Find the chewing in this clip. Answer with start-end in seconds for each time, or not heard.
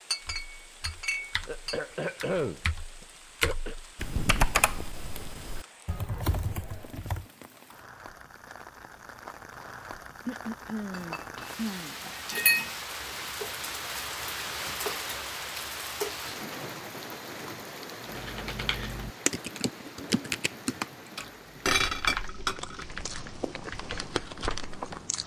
22.6-25.2.